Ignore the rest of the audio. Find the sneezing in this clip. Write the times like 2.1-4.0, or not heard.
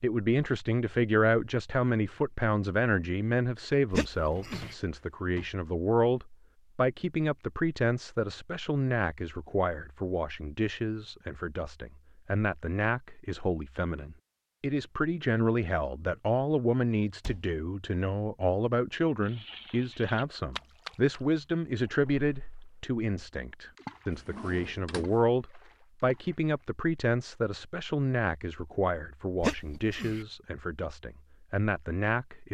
3.9-4.8, 29.4-30.2.